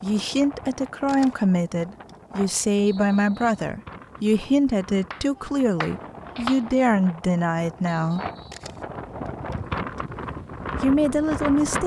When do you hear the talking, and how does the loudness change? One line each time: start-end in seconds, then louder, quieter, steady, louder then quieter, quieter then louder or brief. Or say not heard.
0.0-8.2 steady
10.8-11.8 brief.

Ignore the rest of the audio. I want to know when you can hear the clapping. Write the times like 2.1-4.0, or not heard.
5.1-6.6.